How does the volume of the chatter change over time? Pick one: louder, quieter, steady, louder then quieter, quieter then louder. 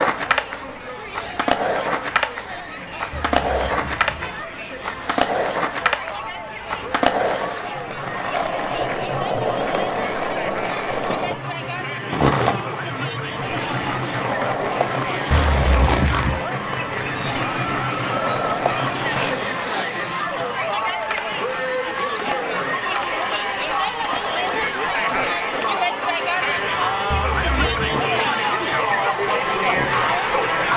louder.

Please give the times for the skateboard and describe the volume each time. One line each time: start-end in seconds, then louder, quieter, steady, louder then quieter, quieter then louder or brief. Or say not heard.
0.0-30.7 quieter.